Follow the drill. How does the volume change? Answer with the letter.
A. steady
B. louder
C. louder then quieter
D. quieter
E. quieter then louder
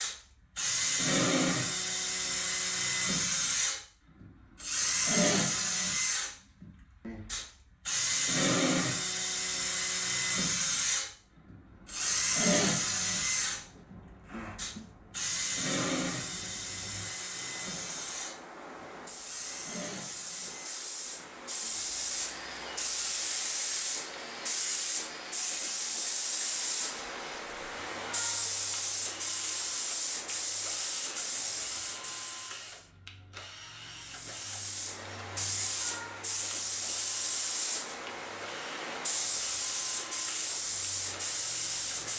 D.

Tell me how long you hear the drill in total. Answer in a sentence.
You can hear the drill for 42 seconds altogether.